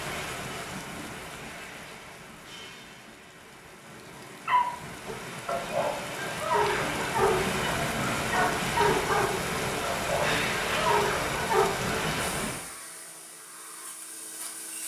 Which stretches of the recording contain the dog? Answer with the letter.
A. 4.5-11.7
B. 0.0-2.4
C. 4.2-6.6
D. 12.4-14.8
A.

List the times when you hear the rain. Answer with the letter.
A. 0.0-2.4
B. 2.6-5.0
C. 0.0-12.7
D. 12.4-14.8
C.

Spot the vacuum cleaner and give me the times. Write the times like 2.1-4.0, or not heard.
12.4-14.8.